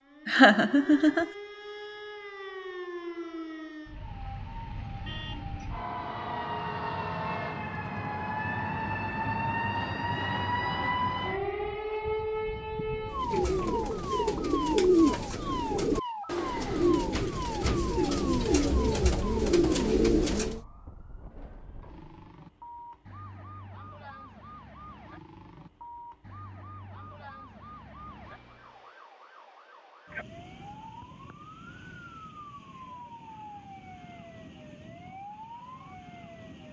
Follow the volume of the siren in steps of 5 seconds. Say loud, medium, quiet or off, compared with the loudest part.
medium, loud, loud, medium, quiet, quiet, quiet, quiet.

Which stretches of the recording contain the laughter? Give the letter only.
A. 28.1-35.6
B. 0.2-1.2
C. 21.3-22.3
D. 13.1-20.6
B.